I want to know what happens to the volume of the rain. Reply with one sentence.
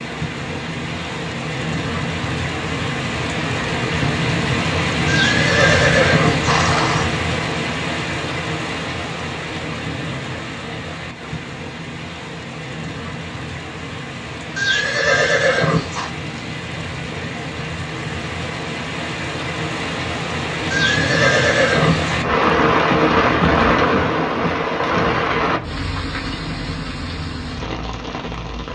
The volume of the rain goes down, then up.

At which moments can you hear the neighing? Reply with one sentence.
The neighing can be heard from 5.0 to 7.1 s, from 14.6 to 16.1 s and from 20.7 to 22.1 s.